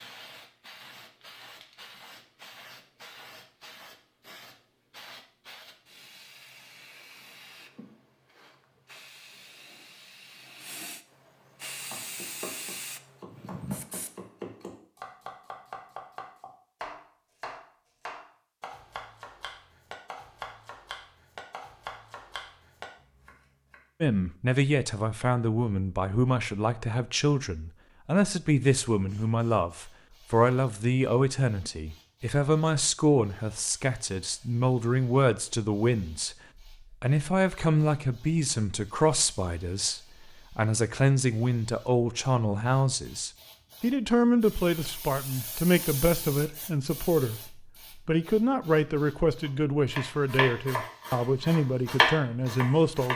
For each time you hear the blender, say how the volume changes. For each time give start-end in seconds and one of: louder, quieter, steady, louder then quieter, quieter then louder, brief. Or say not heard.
not heard.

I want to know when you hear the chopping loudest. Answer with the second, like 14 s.
52 s.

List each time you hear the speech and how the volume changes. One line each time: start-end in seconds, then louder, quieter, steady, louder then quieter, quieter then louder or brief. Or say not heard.
24.0-53.1 steady.